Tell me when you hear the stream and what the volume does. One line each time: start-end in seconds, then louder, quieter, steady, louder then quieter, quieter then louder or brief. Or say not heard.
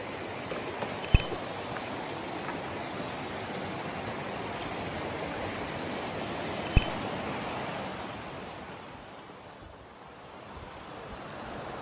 0.0-11.7 quieter.